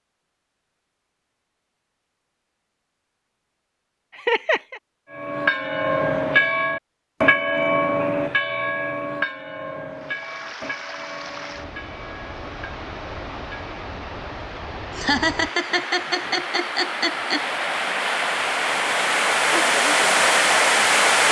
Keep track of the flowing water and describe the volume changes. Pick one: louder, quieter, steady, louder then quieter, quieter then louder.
louder.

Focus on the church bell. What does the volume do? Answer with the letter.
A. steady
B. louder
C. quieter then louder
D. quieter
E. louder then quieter
D.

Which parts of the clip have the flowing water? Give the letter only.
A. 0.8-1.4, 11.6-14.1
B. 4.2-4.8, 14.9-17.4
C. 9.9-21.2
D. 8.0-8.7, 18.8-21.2
C.